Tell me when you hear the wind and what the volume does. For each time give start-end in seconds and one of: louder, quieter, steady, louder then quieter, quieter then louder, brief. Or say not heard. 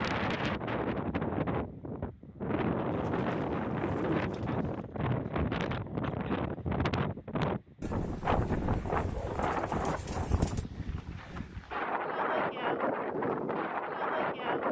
0.0-14.6 steady.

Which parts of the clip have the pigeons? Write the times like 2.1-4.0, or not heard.
2.9-4.8, 7.8-10.7.